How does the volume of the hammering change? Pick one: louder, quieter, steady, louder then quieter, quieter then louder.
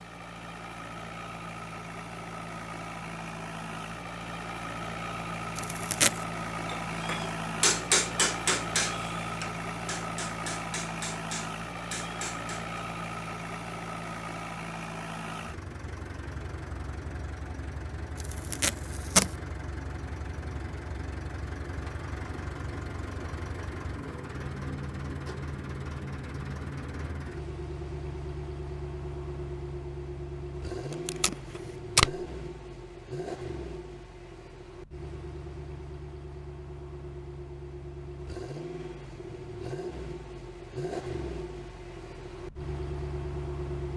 quieter.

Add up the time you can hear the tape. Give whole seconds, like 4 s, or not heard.
3 s.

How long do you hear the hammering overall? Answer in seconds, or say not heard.
6 s.